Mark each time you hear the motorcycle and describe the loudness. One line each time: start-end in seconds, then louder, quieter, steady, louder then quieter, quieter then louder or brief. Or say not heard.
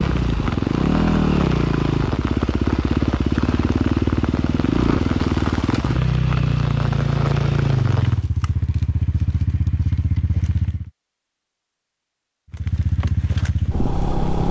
0.0-10.9 quieter
12.5-14.4 brief.